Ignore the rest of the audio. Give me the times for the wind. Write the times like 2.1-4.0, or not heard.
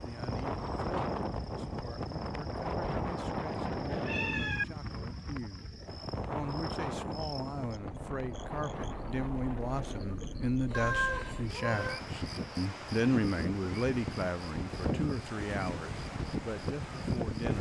0.0-17.5.